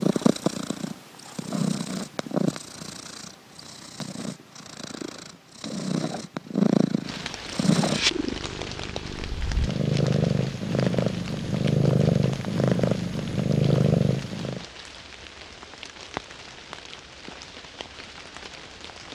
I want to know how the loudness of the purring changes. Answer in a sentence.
The volume of the purring goes down, then up.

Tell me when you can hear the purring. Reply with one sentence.
The purring can be heard from 0.0 to 14.6 s.